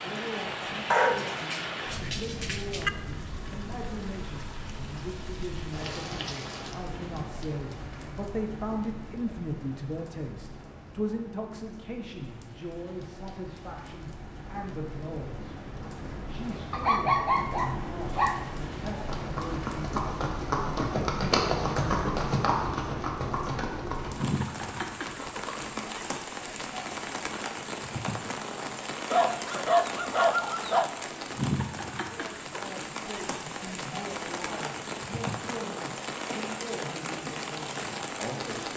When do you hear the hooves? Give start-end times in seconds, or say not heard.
18.9-25.9.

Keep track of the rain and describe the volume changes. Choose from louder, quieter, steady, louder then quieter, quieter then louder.
quieter then louder.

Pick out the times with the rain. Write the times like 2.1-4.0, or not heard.
0.0-38.7.